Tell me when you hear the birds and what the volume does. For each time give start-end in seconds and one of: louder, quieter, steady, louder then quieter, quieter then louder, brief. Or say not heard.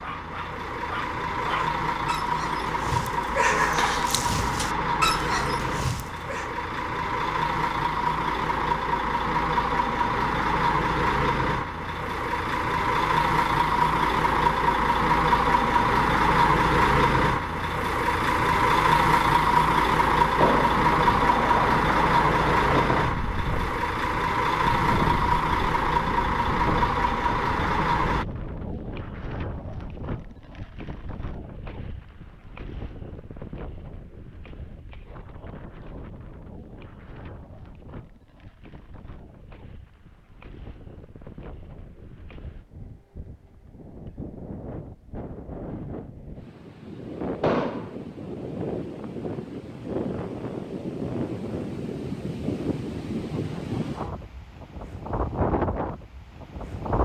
not heard.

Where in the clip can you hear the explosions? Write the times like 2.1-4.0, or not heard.
20.4-20.8, 47.4-48.0.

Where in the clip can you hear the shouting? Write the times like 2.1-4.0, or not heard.
not heard.